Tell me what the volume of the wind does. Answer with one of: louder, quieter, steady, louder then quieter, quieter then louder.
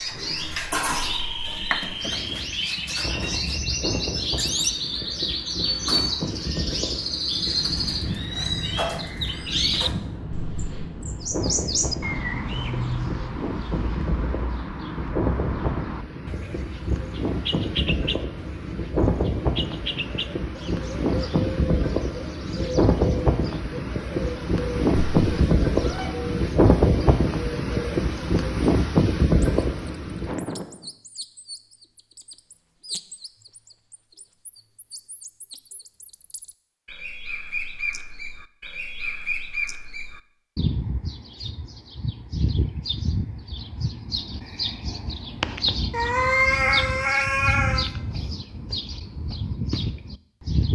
louder.